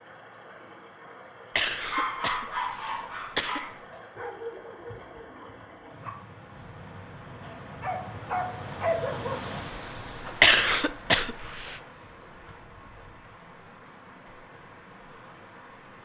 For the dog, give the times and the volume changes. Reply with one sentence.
The dog can be heard from 1.9 to 9.4 s, getting quieter then louder.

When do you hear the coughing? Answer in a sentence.
You can hear the coughing from 1.6 to 3.6 s and from 10.4 to 11.8 s.